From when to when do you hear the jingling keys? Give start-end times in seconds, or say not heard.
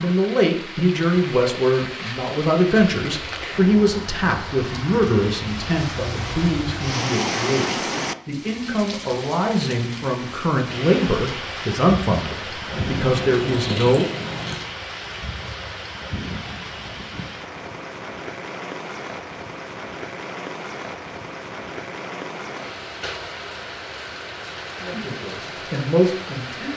12.7-14.6.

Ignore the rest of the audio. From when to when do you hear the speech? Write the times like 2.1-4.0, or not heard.
0.0-14.1, 24.9-26.7.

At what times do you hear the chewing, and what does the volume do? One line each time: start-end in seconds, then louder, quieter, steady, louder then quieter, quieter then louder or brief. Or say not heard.
not heard.